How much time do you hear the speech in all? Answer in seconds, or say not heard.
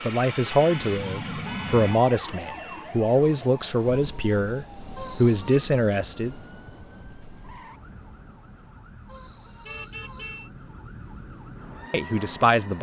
7 s.